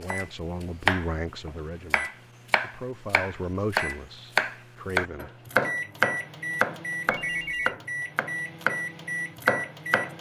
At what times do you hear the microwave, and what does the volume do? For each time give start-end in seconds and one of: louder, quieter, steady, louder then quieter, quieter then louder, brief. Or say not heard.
0.0-10.1 louder.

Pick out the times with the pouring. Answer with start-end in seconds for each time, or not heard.
not heard.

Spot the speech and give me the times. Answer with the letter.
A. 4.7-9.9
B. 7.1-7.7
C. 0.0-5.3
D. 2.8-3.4
C.